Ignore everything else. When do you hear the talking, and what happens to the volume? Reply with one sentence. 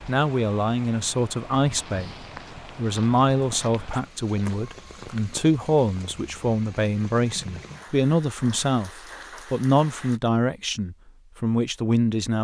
The talking can be heard briefly from 0.1 to 2.1 s; and from 2.8 to 12.3 s, at a steady volume.